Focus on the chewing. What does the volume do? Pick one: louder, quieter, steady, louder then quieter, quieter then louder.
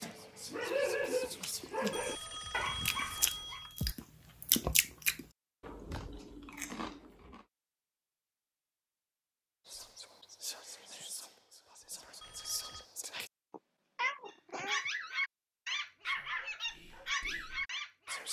louder then quieter.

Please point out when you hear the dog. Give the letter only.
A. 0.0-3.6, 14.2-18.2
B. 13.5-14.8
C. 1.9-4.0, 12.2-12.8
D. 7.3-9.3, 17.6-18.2
A.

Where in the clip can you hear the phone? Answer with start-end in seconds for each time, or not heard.
1.9-4.0, 12.2-12.8.